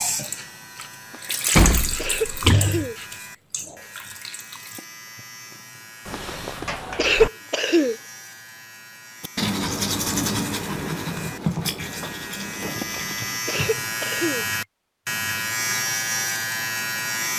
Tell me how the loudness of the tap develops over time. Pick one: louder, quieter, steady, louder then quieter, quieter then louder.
louder then quieter.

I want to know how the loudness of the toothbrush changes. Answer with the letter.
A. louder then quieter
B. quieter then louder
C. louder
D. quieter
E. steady
D.